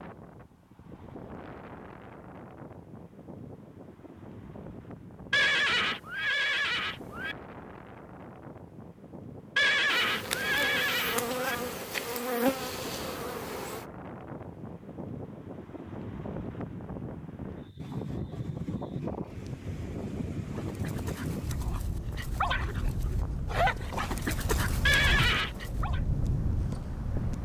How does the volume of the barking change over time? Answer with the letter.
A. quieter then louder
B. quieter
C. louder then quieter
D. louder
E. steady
C.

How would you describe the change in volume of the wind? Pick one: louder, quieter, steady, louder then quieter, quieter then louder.
louder.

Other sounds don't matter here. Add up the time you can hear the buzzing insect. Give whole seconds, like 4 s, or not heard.
4 s.